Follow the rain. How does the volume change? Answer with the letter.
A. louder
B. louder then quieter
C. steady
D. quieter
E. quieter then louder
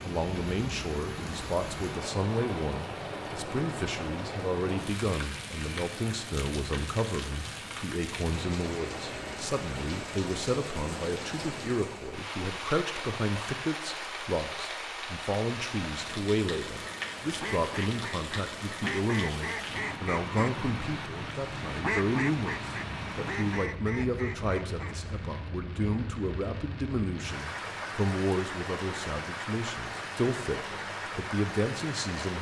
C.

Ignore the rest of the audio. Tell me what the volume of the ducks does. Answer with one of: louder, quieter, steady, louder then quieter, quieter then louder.
louder then quieter.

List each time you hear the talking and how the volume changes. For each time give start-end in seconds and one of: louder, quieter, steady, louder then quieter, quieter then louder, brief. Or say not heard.
0.0-32.3 steady.